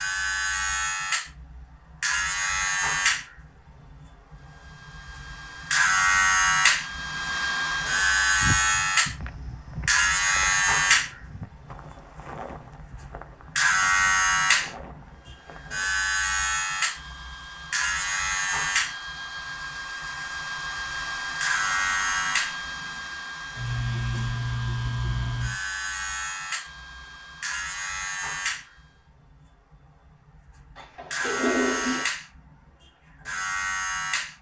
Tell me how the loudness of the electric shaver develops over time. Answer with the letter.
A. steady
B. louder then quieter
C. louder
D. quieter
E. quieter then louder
D.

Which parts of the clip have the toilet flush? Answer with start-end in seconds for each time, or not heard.
30.8-32.0.